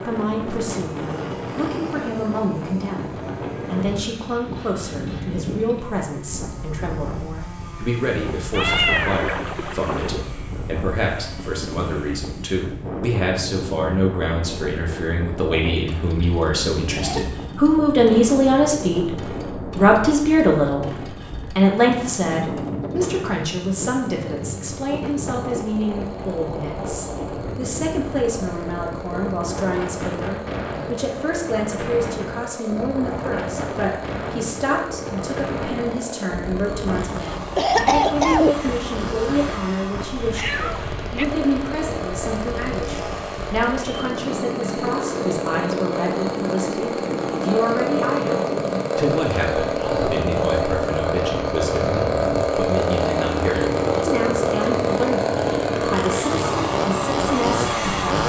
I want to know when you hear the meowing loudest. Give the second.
9 s.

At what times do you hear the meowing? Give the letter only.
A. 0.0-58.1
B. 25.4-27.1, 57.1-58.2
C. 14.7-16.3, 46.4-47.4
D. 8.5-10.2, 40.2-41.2
D.